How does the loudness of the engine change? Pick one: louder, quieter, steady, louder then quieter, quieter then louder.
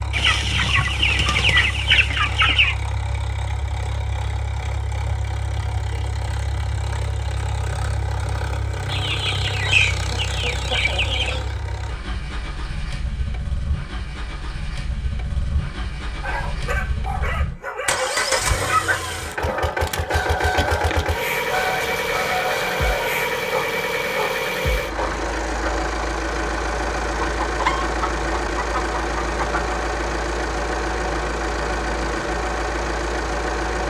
louder.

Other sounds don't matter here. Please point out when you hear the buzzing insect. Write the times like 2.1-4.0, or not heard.
not heard.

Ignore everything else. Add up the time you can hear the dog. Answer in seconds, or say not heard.
8 s.